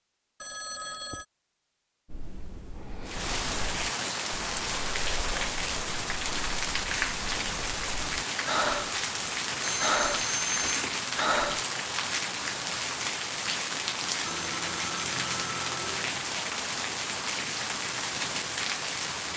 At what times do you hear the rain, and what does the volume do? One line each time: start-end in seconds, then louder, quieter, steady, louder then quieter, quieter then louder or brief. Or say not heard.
3.0-19.3 steady.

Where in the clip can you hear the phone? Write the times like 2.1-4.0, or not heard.
0.4-1.2, 9.6-11.0, 14.2-16.1.